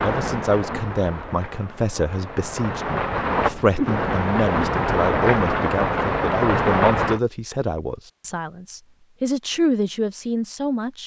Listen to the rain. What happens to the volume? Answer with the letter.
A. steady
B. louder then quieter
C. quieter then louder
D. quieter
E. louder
E.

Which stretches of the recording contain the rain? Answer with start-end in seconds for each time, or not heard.
0.0-7.2.